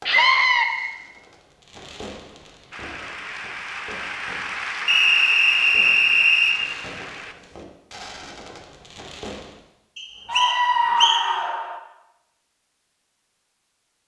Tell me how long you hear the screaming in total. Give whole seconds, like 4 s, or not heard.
2 s.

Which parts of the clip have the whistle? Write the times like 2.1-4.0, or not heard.
0.1-0.9, 4.8-6.5, 9.9-11.2.